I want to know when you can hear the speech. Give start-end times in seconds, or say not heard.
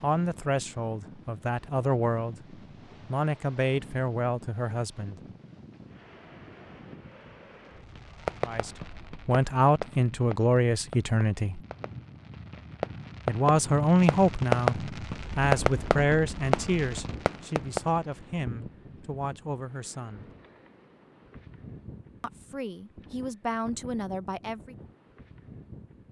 0.0-5.2, 8.4-11.6, 13.2-20.3, 22.2-24.8.